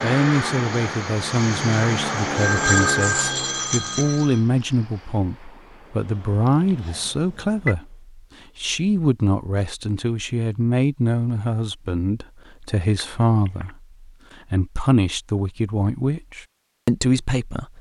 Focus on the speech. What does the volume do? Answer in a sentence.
The loudness of the speech stays about the same.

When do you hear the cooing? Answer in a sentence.
You can't hear the cooing here.